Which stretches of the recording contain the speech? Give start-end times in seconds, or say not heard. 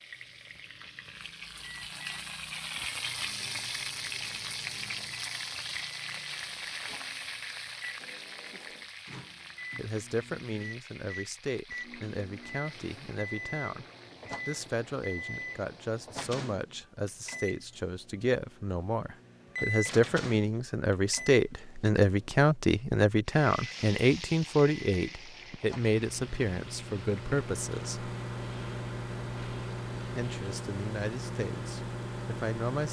9.8-13.8, 14.4-28.1, 30.1-32.8.